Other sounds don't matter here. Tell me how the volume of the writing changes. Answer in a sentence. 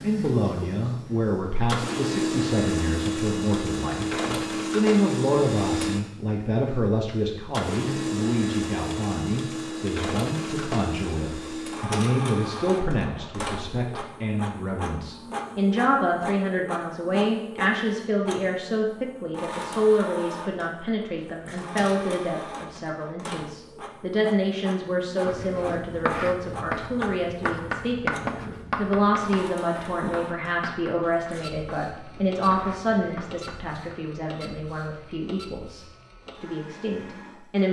The volume of the writing goes down.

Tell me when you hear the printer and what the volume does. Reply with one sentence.
You can hear the printer from 0.0 to 37.6 s, getting quieter.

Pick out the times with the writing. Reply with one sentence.
The writing can be heard from 25.2 to 34.0 s.